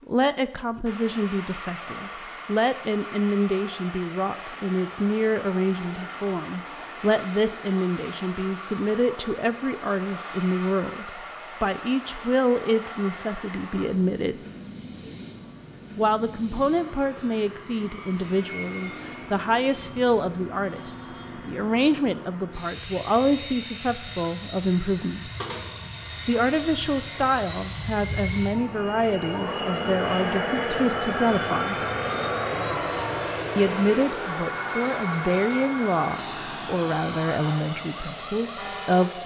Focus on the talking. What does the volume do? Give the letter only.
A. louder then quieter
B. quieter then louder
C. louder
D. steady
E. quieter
D.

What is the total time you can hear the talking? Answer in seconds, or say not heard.
35 s.